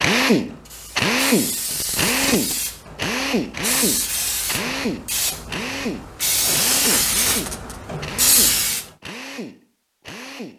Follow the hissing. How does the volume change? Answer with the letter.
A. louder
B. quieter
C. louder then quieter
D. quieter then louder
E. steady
A.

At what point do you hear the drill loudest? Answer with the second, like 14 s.
1 s.